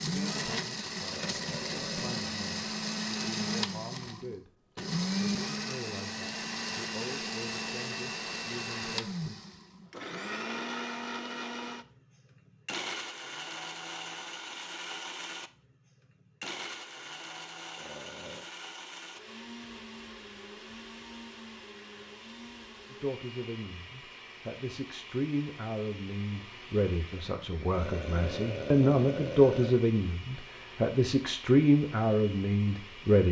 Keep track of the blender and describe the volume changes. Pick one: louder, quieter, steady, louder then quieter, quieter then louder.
quieter.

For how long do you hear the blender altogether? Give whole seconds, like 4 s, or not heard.
33 s.